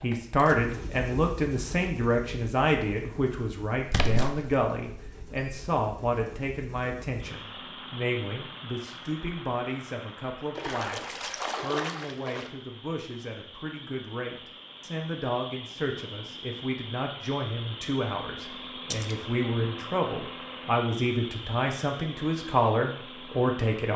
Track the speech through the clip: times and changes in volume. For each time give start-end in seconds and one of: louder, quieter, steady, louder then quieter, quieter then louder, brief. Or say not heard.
0.0-23.9 quieter then louder.